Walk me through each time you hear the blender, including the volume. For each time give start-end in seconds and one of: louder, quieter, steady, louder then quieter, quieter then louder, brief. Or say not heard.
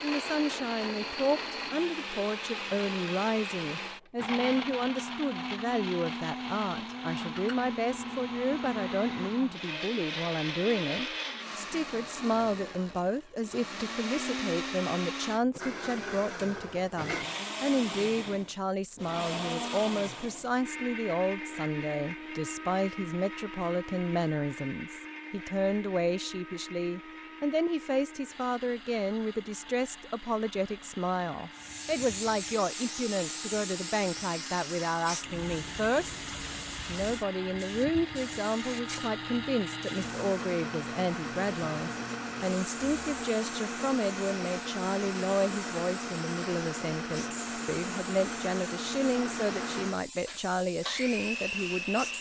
0.0-52.1 quieter then louder.